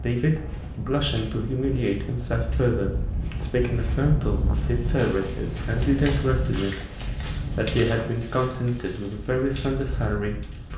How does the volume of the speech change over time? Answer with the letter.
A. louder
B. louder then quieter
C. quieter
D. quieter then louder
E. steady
E.